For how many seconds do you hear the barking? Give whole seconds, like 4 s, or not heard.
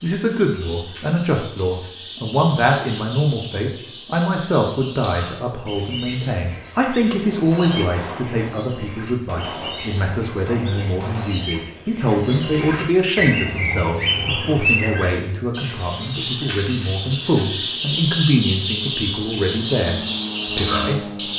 not heard.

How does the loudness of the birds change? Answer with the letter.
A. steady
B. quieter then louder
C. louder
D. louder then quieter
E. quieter
C.